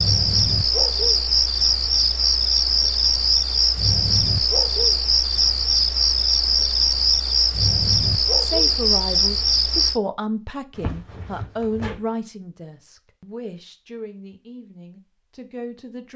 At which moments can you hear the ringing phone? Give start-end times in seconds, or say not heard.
not heard.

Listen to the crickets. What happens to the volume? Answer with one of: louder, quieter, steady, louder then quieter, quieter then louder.
steady.